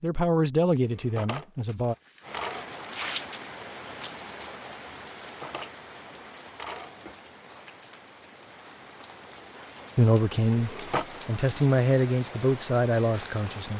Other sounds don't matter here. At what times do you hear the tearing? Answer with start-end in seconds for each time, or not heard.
1.6-3.5.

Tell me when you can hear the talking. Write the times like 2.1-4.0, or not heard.
0.0-1.9, 9.9-13.7.